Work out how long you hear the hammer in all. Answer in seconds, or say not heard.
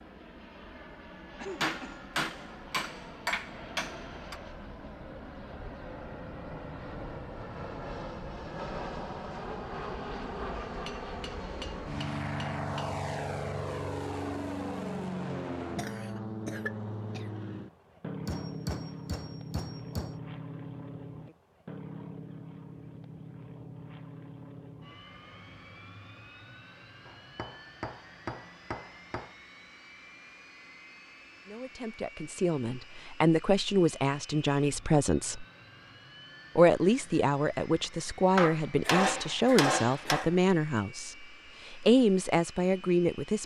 11 s.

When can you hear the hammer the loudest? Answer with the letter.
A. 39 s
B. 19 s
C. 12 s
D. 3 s
A.